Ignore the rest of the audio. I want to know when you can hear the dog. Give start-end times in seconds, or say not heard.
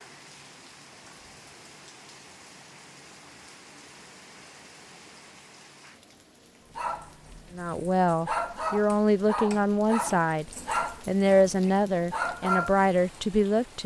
6.7-12.8.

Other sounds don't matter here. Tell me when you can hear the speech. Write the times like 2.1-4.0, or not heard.
7.5-13.8.